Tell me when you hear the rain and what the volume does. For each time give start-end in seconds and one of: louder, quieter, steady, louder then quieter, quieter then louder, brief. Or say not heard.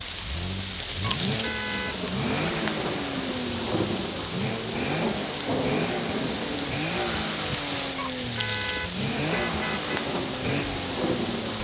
0.0-11.5 steady.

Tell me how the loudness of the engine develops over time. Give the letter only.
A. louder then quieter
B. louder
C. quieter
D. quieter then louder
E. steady
E.